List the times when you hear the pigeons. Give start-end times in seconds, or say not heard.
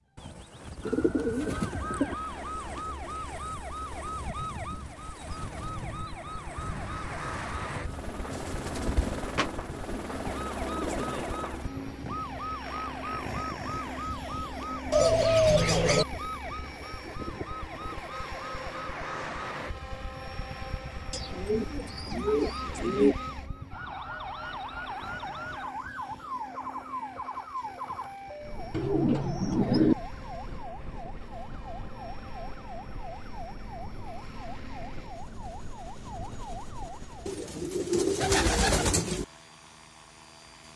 0.8-2.1, 8.3-11.1, 14.9-16.1, 21.1-23.1, 28.7-29.9, 37.2-39.2.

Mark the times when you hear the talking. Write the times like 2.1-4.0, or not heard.
not heard.